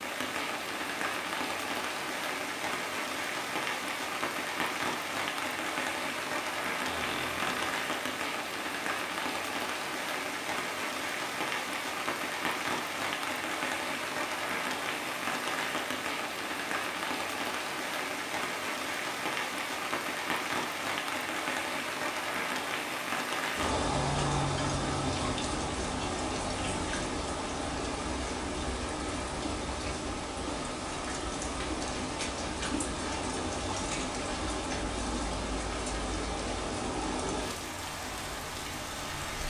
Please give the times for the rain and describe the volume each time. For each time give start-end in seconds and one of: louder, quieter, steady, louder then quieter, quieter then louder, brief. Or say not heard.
0.0-39.4 steady.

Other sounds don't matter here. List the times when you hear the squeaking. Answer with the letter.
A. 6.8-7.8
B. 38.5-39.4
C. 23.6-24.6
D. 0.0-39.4
A.